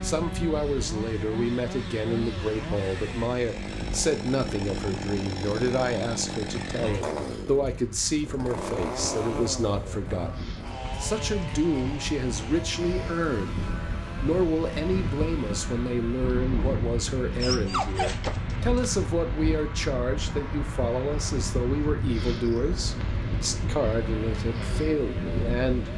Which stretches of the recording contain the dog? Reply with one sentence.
You can hear the dog from 17.4 to 19.0 s.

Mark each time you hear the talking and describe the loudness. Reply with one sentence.
You can hear the talking from 0.0 to 25.9 s, at a steady volume.